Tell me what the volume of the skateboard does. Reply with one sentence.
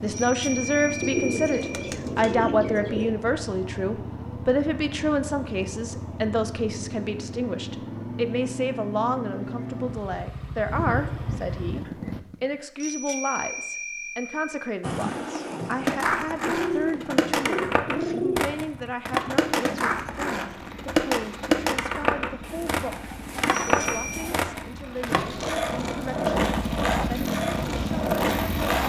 The loudness of the skateboard stays about the same.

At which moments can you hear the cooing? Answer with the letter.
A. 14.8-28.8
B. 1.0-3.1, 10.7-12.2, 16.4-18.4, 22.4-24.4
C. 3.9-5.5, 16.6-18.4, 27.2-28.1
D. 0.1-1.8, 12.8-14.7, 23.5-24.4
B.